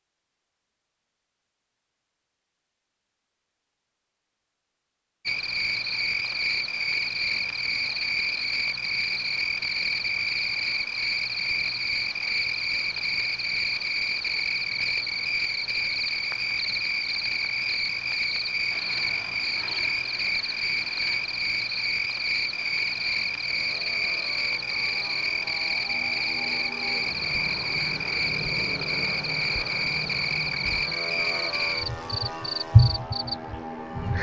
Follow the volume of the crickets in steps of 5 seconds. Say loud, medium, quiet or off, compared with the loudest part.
off, loud, loud, loud, loud, loud, loud.